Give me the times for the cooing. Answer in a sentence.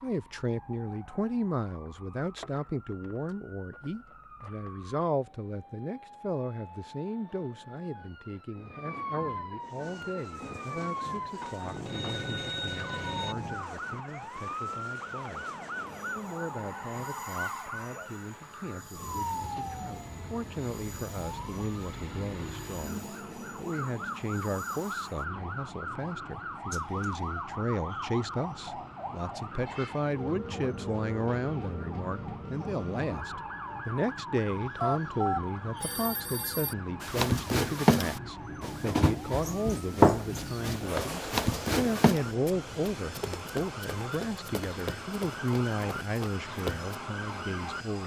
The cooing can't be heard in this clip.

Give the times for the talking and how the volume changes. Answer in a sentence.
You can hear the talking from 0.0 to 48.0 s, getting quieter then louder.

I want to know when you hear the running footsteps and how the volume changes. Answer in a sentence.
The running footsteps can be heard from 37.0 to 47.0 s, getting quieter.